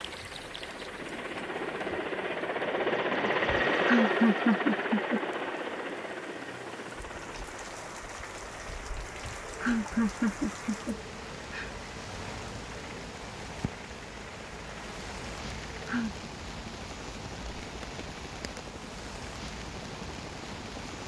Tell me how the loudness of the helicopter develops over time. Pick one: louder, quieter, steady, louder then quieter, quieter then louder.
quieter.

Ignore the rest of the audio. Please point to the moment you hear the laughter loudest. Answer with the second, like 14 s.
4 s.